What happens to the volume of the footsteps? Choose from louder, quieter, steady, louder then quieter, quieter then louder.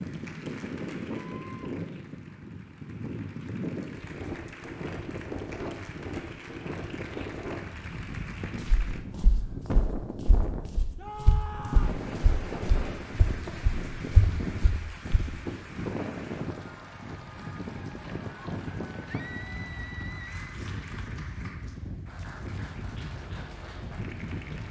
louder.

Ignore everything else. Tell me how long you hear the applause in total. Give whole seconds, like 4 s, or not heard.
22 s.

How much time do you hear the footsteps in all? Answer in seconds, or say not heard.
7 s.